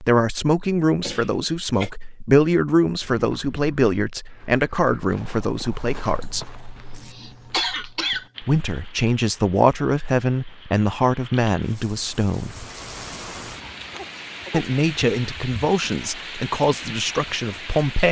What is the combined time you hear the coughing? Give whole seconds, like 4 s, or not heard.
4 s.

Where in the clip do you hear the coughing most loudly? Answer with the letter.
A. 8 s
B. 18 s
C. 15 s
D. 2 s
A.